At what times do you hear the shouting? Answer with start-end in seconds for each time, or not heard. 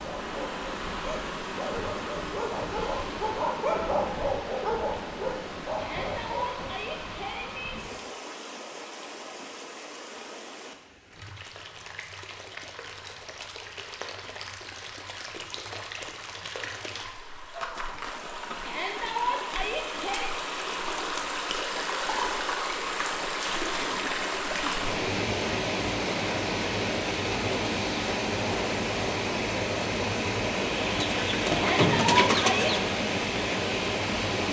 5.8-7.8, 18.6-20.4, 31.5-32.7.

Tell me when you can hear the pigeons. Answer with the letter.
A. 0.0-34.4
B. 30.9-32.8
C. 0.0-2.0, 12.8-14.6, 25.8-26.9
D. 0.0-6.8
B.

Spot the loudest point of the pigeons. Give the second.
32 s.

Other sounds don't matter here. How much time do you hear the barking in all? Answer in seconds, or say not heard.
7 s.